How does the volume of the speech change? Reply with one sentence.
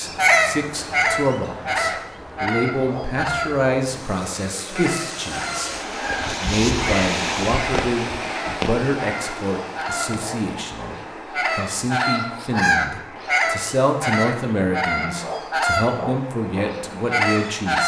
The volume of the speech stays about the same.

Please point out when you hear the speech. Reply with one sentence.
The speech can be heard from 0.0 to 17.8 s.